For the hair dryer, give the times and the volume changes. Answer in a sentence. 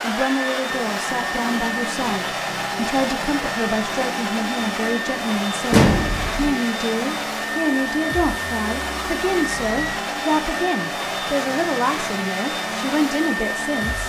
You can hear the hair dryer from 0.0 to 14.0 s, at a steady volume.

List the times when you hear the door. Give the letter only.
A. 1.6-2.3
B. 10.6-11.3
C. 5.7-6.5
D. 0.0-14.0
C.